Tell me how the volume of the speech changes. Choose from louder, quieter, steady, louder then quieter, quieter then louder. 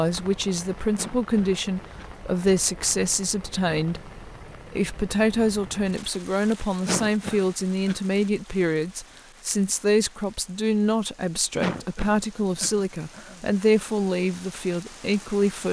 steady.